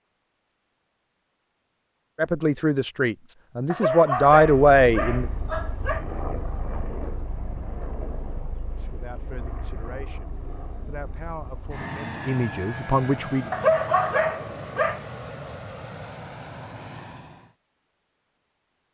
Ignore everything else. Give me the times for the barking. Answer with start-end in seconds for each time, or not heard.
3.7-6.0, 13.5-15.0.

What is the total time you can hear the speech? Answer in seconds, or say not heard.
8 s.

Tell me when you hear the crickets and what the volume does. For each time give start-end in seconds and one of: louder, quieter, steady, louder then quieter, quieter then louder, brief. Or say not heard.
not heard.